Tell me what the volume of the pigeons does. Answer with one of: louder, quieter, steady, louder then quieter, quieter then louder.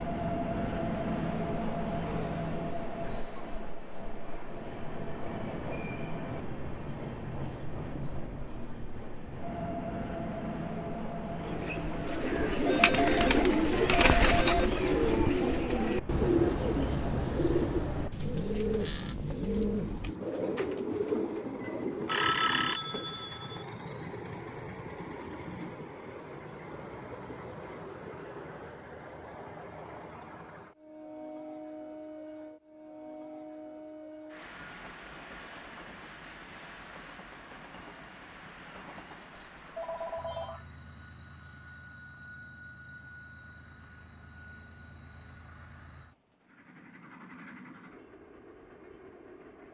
quieter.